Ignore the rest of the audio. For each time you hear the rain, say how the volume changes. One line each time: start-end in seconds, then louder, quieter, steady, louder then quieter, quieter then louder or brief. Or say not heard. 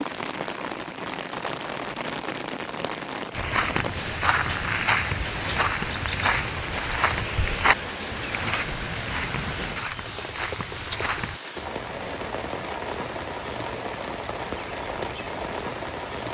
0.0-16.2 steady.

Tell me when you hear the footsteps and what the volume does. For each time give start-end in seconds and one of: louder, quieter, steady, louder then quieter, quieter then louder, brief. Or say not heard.
3.3-11.4 quieter.